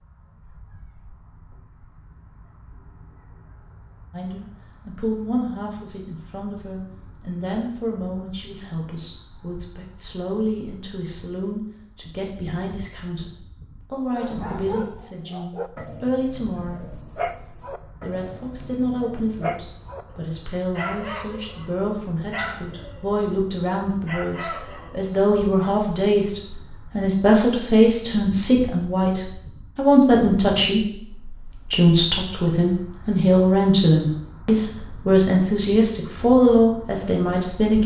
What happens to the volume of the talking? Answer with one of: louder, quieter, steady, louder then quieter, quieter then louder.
louder.